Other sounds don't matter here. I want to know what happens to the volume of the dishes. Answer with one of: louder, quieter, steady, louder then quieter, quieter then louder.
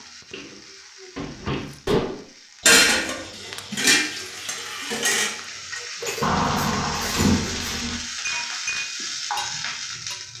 quieter.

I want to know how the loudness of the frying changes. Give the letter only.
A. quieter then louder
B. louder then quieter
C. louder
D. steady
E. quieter
C.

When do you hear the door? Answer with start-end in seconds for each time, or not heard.
0.3-1.7, 6.2-8.0.